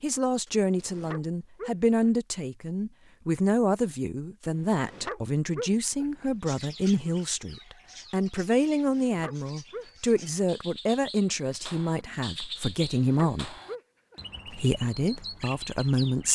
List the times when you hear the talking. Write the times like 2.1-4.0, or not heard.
0.0-13.6, 14.4-16.3.